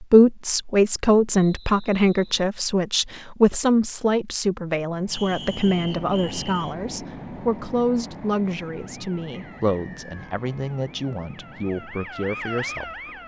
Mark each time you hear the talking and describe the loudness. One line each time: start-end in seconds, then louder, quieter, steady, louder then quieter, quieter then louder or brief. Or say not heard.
0.0-12.9 quieter.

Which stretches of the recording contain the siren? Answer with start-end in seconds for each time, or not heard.
8.8-13.2.